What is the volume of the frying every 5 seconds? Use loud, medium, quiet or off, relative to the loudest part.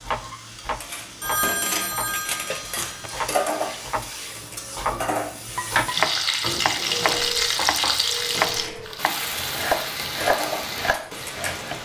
quiet, loud, medium.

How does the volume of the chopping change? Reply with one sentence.
The volume of the chopping goes up, then down.